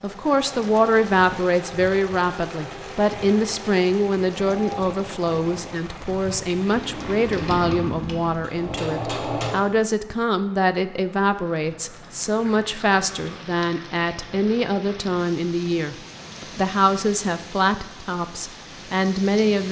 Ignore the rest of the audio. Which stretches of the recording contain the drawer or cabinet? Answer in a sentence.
The drawer or cabinet can be heard from 7.3 to 8.9 s.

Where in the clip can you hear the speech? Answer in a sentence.
You can hear the speech from 0.0 to 19.6 s.